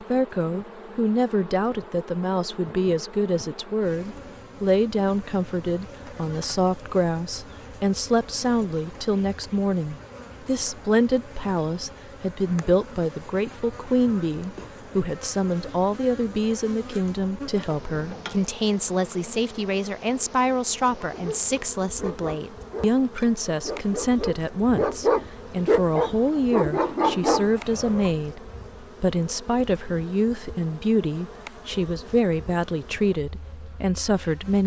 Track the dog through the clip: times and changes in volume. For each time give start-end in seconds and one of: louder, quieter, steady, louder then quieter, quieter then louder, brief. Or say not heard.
21.0-28.1 louder.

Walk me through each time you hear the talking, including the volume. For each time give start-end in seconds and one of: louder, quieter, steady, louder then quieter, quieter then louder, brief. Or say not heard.
0.0-34.6 steady.